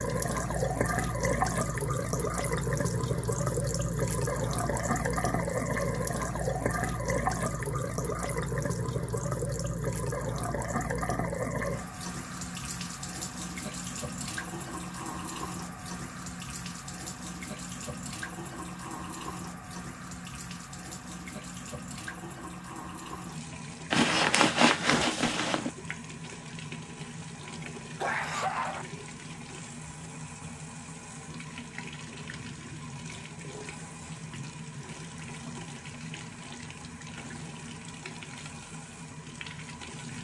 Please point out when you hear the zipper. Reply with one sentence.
The zipper can be heard from 23.9 to 25.7 s.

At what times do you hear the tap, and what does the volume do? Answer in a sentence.
The tap can be heard from 0.0 to 40.1 s, getting quieter.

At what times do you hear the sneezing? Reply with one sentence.
You can hear the sneezing from 28.0 to 28.9 s.